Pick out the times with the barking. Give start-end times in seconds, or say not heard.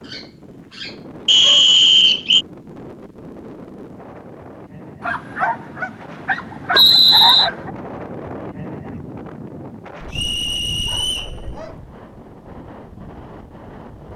0.0-1.8, 5.0-7.8, 10.0-11.8.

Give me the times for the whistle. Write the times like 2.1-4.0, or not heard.
1.2-2.5, 6.7-7.5, 10.1-11.3.